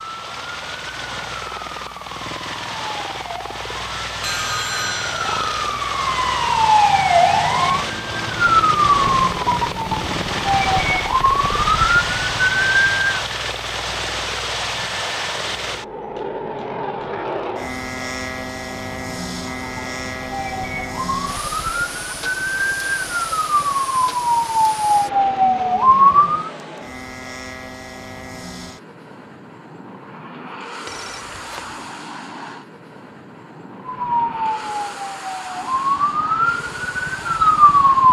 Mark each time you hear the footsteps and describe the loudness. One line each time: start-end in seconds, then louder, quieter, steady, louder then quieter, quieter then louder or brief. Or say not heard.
not heard.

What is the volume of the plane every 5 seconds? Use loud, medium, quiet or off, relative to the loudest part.
medium, loud, loud, loud, medium, medium, medium, medium.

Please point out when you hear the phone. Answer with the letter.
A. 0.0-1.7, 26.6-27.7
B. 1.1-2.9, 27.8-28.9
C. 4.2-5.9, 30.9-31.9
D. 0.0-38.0
C.